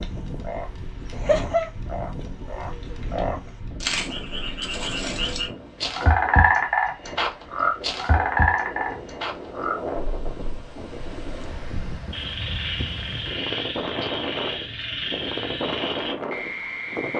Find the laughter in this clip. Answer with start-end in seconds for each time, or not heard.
not heard.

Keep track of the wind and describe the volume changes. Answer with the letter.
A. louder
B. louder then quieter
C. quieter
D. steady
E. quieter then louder
A.